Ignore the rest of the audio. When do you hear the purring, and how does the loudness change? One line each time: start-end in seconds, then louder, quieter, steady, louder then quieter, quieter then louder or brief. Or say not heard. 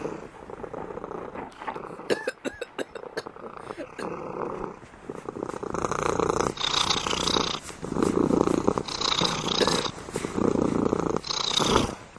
0.0-12.1 louder.